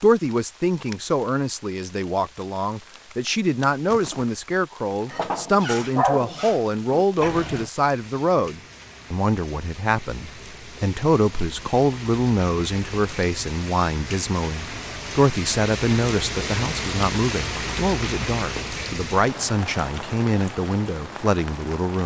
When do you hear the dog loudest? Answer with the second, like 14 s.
6 s.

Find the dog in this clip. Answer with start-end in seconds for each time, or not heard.
5.1-7.7.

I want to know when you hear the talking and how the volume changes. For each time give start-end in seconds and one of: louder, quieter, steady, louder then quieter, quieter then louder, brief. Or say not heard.
0.0-22.0 steady.